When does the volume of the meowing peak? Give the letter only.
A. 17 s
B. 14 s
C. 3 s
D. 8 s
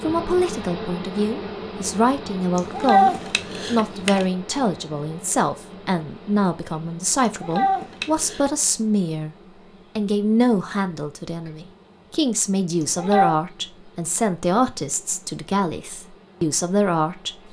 C.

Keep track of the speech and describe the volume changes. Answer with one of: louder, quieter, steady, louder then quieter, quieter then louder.
steady.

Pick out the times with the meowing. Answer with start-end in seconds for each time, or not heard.
2.5-4.2, 7.2-8.5, 12.8-13.3.